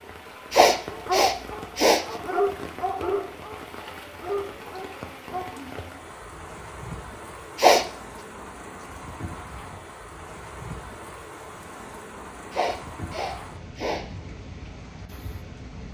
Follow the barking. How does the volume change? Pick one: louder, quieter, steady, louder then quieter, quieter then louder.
louder then quieter.